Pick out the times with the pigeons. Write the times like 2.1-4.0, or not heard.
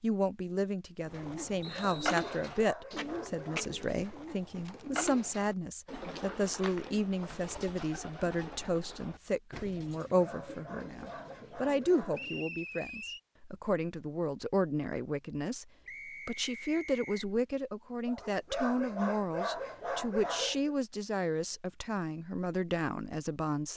1.1-12.5.